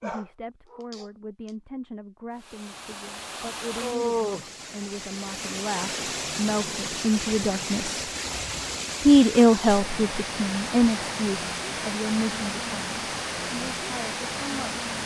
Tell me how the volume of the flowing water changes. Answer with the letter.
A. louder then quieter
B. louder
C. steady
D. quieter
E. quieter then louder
C.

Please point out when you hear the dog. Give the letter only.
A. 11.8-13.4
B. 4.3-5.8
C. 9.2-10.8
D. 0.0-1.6
D.